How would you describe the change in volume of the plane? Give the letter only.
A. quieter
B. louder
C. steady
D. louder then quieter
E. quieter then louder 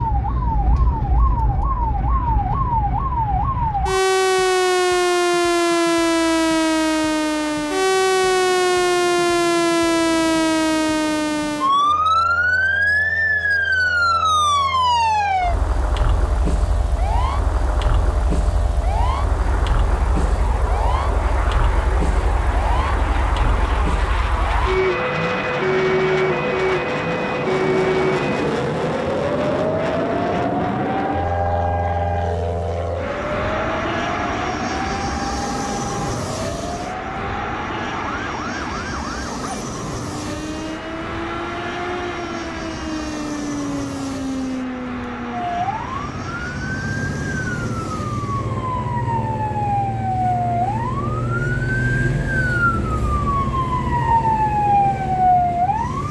D.